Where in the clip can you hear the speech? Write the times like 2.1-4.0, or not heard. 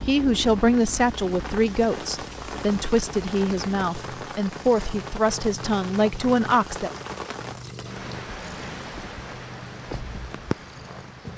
0.0-6.9.